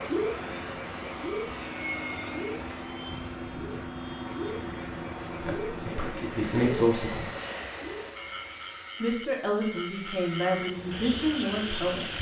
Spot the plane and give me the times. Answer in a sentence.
The plane can be heard from 0.0 to 12.1 s.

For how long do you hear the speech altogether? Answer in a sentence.
The speech can be heard for 5 seconds in total.